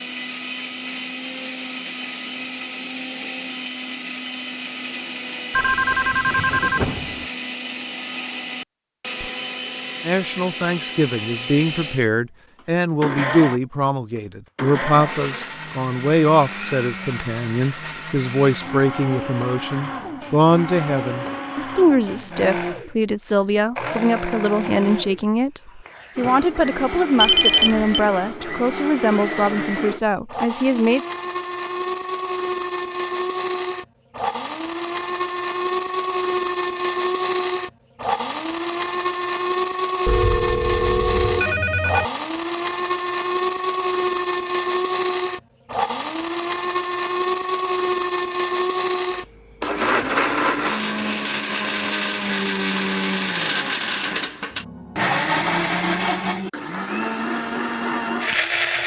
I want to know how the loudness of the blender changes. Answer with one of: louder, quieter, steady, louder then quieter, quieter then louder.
louder.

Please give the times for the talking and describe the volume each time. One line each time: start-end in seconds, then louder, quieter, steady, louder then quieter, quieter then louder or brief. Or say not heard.
10.1-31.0 steady.